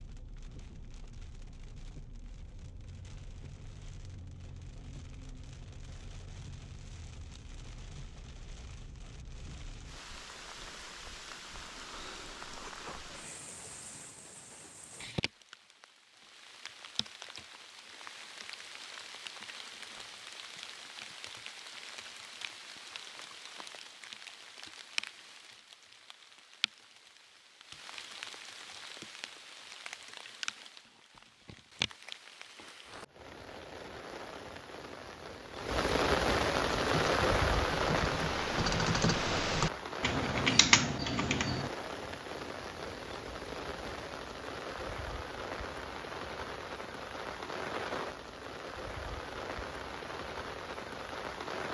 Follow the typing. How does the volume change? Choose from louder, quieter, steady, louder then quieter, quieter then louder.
louder.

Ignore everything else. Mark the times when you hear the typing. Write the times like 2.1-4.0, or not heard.
36.9-41.7.